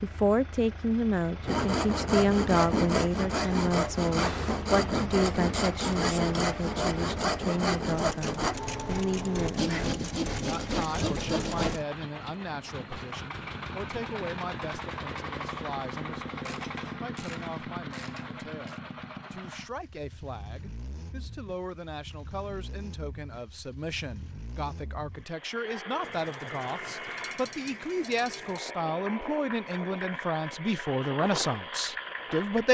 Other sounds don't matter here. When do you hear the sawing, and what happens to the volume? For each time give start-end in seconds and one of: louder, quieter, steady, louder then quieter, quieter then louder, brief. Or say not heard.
1.4-11.8 steady.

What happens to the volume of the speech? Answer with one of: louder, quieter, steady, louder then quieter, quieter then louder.
quieter then louder.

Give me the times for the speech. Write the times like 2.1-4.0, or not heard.
0.0-32.6.